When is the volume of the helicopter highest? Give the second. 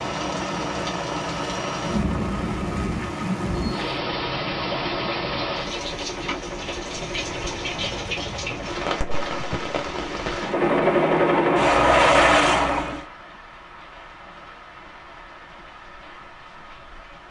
12 s.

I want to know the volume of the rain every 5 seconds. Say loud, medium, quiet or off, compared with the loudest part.
loud, loud, medium, quiet.